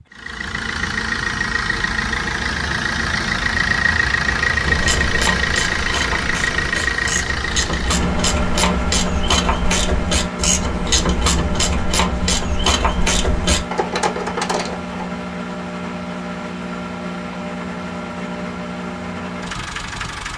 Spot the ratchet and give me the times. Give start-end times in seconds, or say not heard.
4.7-15.1.